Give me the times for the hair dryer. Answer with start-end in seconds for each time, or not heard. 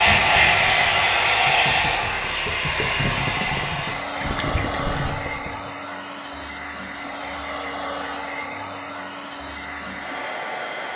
0.0-10.9.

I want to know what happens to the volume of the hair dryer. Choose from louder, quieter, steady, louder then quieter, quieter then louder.
quieter.